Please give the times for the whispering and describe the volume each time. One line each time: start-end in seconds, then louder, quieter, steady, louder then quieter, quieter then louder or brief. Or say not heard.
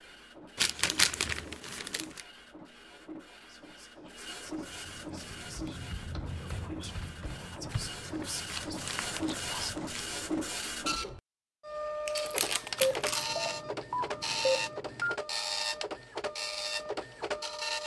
3.4-9.7 louder.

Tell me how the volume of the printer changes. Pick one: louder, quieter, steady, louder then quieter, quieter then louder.
louder.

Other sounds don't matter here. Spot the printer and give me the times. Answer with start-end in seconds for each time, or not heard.
0.0-17.8.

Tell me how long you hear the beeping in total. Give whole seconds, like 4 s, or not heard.
2 s.